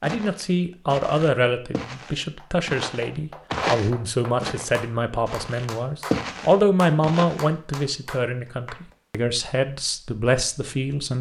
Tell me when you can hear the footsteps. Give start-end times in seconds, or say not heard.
0.0-7.5.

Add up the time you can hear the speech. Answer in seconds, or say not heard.
11 s.